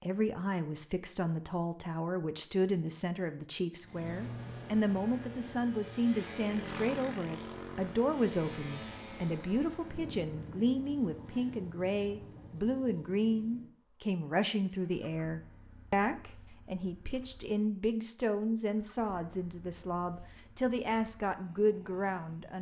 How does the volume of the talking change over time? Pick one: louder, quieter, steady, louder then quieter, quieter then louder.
steady.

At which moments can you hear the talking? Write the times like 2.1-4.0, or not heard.
0.0-22.5.